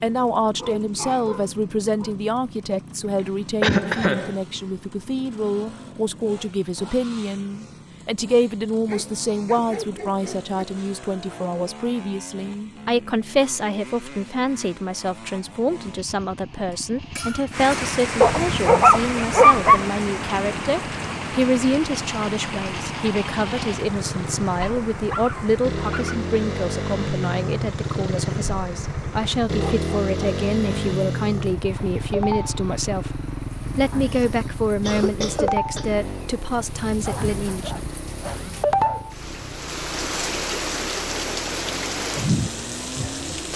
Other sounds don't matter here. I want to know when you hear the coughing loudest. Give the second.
4 s.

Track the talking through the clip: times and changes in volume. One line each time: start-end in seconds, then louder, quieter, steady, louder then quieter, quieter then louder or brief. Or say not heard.
0.0-37.8 steady.